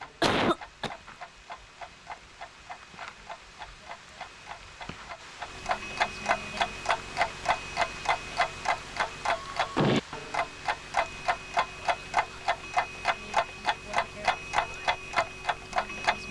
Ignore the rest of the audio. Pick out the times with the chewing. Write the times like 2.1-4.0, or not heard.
not heard.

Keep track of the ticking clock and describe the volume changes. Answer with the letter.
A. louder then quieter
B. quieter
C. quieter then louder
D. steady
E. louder
E.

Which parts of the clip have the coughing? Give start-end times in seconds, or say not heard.
0.2-0.9.